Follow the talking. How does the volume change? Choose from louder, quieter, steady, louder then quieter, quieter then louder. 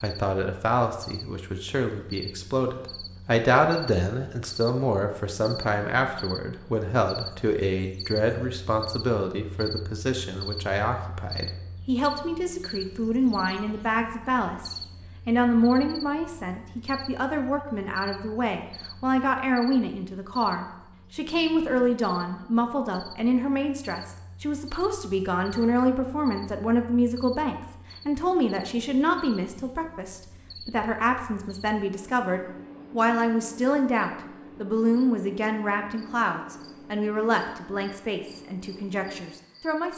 steady.